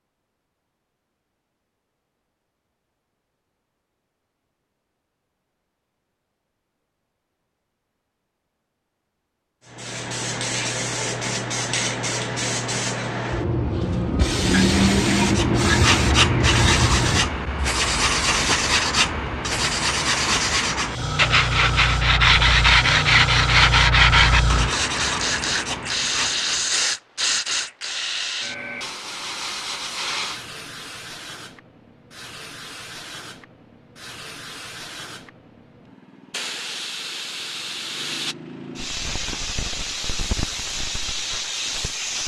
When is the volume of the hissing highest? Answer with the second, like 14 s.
15 s.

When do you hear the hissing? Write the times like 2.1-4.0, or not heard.
9.7-42.2.